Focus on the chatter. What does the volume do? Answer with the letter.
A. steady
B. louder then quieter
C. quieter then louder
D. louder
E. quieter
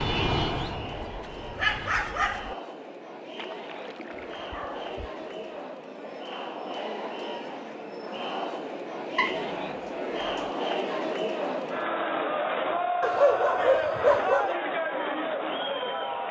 D.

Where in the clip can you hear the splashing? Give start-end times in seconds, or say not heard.
3.4-4.5.